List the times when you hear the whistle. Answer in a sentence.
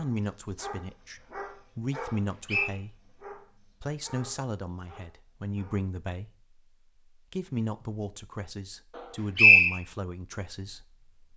The whistle can be heard from 2.0 to 2.7 s and from 8.9 to 9.8 s.